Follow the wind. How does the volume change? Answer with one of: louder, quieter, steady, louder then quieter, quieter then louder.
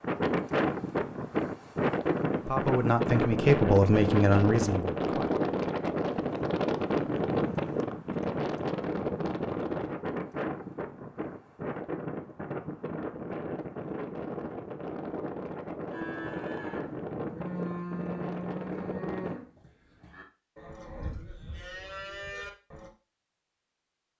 quieter.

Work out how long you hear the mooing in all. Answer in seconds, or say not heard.
7 s.